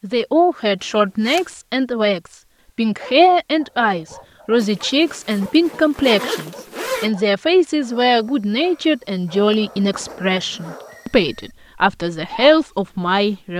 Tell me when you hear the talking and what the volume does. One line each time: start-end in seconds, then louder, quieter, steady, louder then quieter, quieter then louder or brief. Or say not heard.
0.0-13.5 steady.